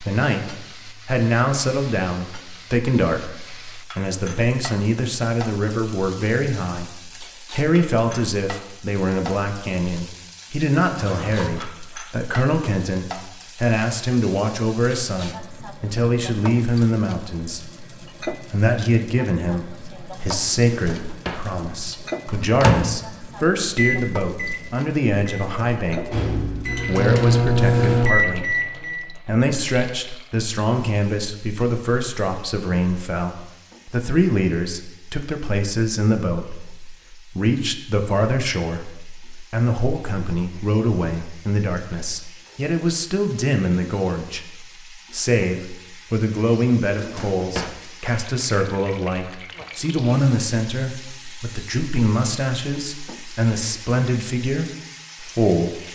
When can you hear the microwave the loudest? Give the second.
28 s.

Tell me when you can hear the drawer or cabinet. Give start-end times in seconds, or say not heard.
11.0-11.7, 20.6-21.5, 46.9-47.8.